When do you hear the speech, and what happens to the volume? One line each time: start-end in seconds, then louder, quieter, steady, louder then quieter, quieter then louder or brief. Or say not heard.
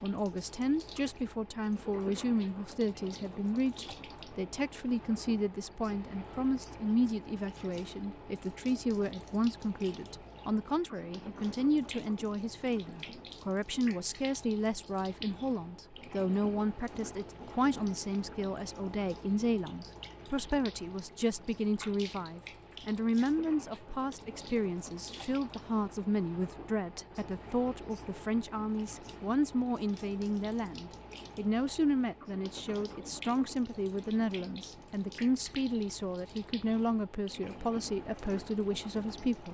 0.0-39.5 steady.